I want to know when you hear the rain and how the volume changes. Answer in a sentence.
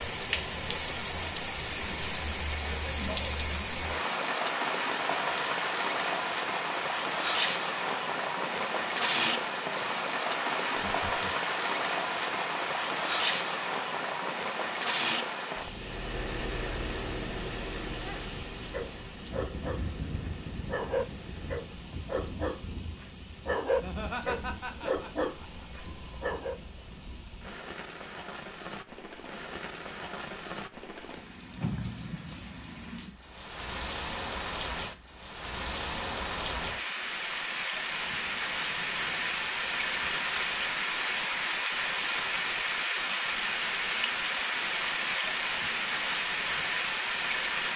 You can hear the rain from 0.0 to 47.7 s, getting quieter then louder.